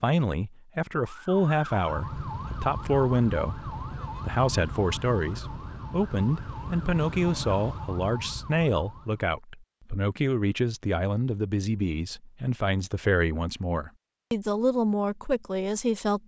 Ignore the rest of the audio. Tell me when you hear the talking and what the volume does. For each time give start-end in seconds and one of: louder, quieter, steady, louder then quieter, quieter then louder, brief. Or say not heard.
0.0-16.2 steady.